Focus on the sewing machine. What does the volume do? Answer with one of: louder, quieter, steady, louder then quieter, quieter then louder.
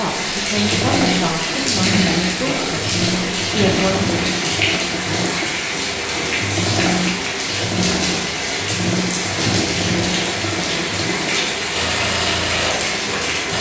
steady.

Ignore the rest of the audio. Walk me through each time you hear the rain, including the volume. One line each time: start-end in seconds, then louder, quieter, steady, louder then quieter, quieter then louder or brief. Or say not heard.
0.0-13.5 steady.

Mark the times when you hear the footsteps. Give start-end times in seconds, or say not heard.
not heard.